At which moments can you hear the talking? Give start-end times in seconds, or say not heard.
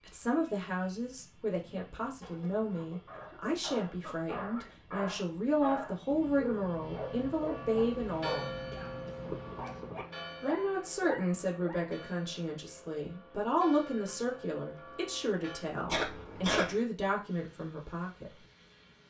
0.1-8.5, 10.4-18.3.